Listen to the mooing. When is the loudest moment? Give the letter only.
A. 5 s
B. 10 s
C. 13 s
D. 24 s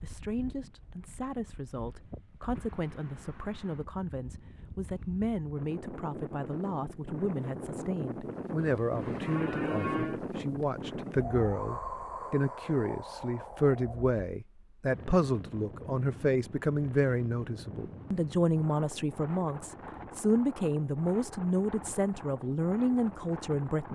B.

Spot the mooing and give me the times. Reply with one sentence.
You can hear the mooing from 8.6 to 10.2 s.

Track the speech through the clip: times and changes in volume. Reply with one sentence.
You can hear the speech from 0.0 to 23.9 s, getting louder.